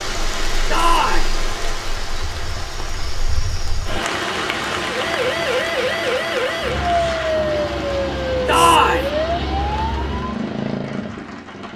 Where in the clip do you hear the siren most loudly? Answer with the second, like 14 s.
7 s.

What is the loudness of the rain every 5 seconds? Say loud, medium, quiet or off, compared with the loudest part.
loud, loud, medium.